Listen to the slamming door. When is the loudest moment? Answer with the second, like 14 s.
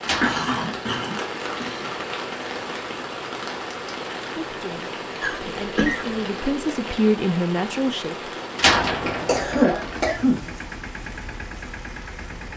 9 s.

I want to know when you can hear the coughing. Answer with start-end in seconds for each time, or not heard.
0.2-1.9, 5.2-6.2, 9.2-10.5.